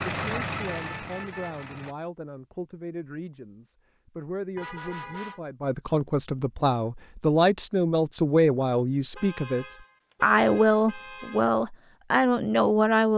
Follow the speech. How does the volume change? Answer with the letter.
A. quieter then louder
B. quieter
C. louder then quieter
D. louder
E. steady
D.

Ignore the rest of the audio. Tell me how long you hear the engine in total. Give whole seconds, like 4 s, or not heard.
2 s.